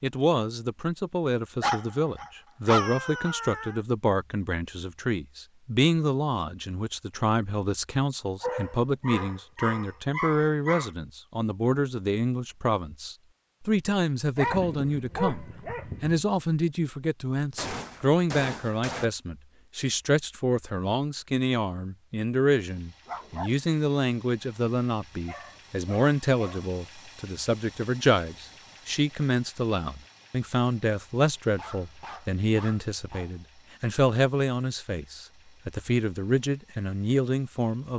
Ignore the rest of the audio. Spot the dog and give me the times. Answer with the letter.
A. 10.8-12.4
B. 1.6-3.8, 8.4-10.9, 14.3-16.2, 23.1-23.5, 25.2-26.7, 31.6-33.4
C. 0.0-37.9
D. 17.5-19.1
B.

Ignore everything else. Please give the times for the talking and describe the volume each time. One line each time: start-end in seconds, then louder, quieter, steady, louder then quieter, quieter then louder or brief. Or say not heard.
0.0-37.9 steady.